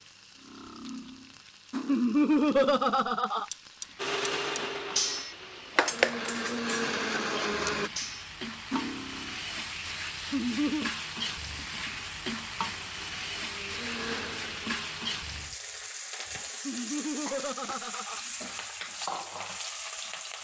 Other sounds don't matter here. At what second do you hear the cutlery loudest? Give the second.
6 s.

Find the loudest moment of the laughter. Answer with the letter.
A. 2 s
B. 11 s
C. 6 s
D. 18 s
A.